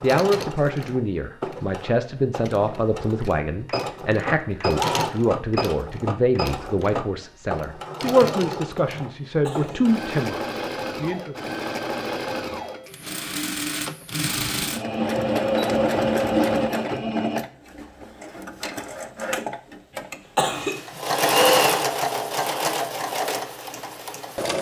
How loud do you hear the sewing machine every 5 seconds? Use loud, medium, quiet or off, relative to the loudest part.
medium, medium, medium, loud, loud.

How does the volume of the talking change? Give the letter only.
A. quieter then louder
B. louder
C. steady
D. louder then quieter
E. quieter
C.